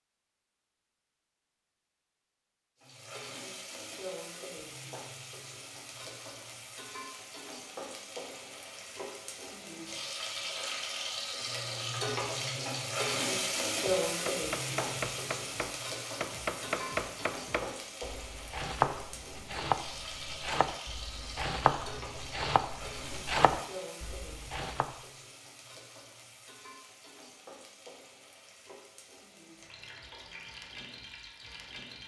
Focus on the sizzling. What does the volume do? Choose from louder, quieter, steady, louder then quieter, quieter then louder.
louder then quieter.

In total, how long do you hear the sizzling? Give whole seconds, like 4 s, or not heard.
29 s.